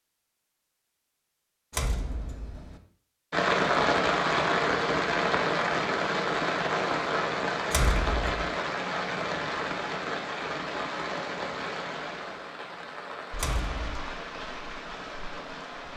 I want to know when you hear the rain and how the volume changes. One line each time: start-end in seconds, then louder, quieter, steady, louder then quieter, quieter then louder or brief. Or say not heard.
3.3-15.9 quieter.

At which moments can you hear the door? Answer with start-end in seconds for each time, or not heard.
1.7-2.8, 7.7-8.5, 13.3-14.0.